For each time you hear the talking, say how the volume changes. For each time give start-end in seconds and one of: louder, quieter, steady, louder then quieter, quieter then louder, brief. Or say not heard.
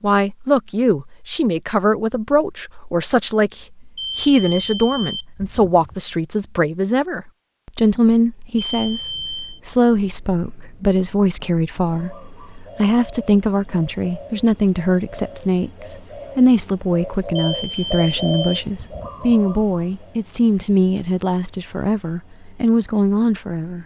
0.0-23.8 steady.